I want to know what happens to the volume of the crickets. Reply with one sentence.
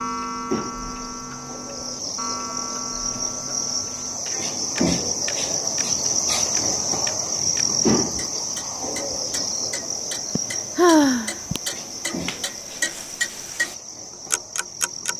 The volume of the crickets goes up, then down.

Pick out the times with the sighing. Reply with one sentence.
You can hear the sighing from 10.3 to 11.6 s.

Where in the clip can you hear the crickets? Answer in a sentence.
You can hear the crickets from 0.0 to 15.1 s.